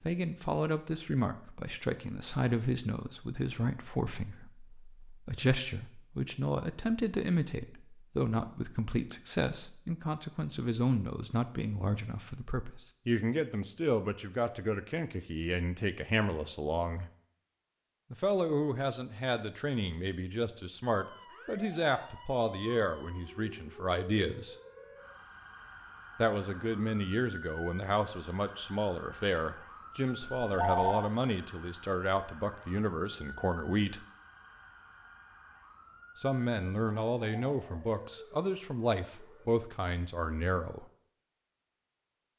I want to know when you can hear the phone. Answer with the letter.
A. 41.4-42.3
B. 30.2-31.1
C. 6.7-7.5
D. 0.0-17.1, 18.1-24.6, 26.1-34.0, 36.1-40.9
B.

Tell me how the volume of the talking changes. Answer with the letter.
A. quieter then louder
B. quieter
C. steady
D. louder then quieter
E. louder
C.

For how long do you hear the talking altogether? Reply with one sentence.
You can hear the talking for 36 seconds altogether.